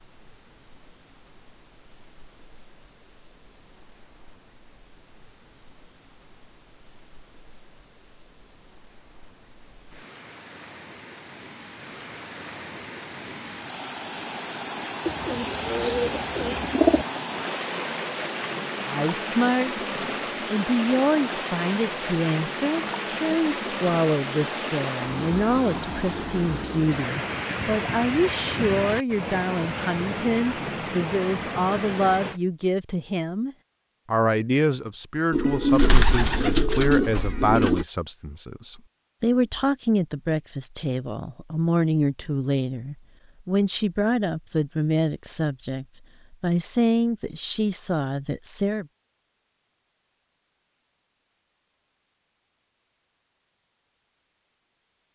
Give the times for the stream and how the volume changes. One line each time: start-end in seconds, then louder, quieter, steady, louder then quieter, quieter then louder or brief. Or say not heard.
0.0-32.4 louder.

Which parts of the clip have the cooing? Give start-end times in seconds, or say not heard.
15.1-17.1, 35.3-37.9.